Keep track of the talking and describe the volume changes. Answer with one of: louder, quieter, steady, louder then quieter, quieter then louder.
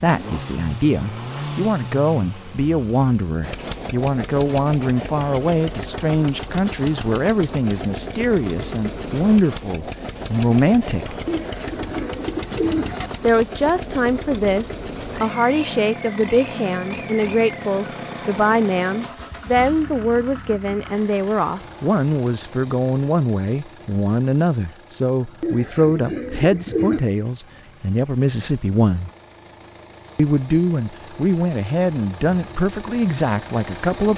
steady.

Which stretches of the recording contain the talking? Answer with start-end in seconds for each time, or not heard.
0.0-11.2, 13.2-29.1, 30.1-34.1.